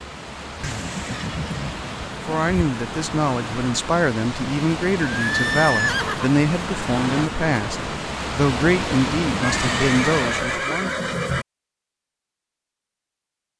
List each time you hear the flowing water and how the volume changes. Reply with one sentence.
The flowing water can be heard from 0.0 to 10.7 s, getting louder.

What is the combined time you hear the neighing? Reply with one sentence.
The neighing can be heard for 5 seconds in total.